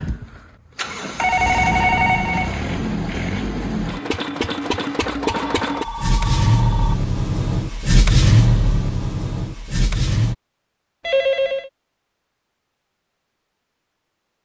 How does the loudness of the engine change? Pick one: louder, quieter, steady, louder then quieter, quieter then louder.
louder.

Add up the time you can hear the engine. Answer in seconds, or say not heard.
10 s.